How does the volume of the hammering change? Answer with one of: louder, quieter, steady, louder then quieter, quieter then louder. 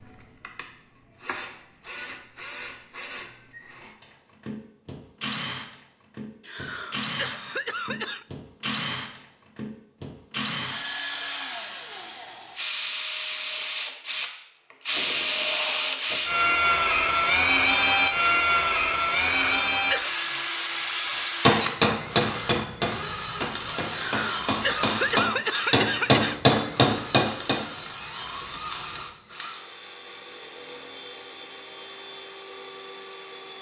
quieter then louder.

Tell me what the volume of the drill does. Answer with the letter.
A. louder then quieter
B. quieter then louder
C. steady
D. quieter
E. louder
A.